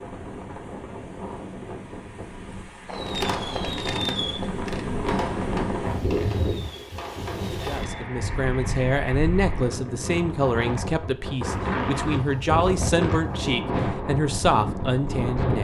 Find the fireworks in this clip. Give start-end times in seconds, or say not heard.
2.9-8.1.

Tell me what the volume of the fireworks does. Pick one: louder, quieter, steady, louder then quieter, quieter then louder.
quieter.